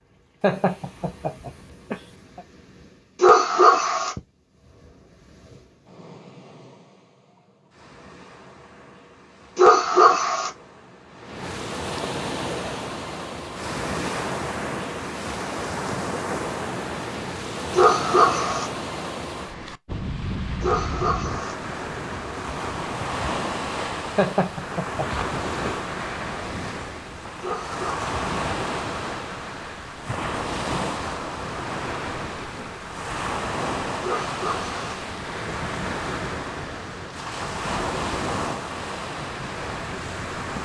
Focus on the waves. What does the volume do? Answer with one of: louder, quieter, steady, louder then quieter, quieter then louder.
louder.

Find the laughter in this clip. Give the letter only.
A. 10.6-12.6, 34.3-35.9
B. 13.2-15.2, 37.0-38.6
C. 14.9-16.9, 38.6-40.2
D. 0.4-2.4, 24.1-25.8
D.